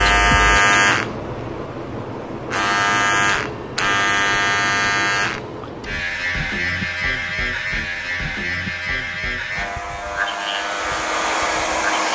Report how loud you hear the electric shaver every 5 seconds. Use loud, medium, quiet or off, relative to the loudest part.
loud, medium, medium.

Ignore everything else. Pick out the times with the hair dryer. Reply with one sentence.
You can hear the hair dryer from 9.4 to 12.0 s.